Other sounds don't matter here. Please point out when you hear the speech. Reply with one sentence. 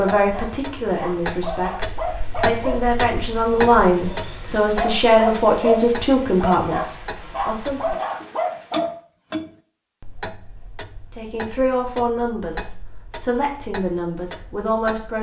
The speech can be heard from 0.0 to 8.0 s and from 11.1 to 15.1 s.